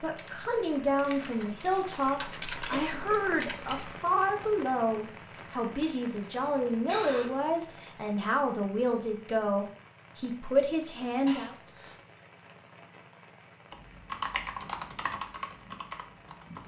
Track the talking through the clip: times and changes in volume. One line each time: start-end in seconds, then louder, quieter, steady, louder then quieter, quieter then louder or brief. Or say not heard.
0.0-11.6 steady.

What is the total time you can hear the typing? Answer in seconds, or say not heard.
7 s.